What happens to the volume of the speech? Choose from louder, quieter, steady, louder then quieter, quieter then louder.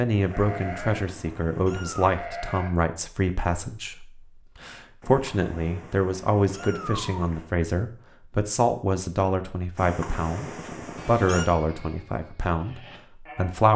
steady.